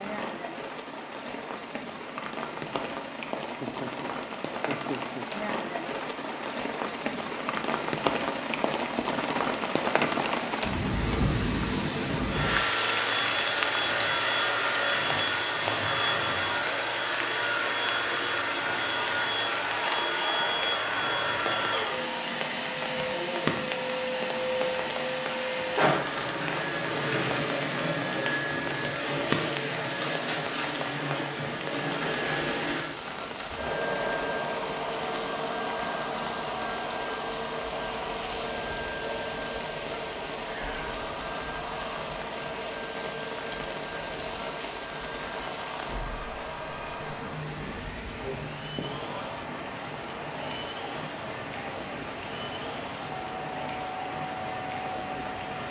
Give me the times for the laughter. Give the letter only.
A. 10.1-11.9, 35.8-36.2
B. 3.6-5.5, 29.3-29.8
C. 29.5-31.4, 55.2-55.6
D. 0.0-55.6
B.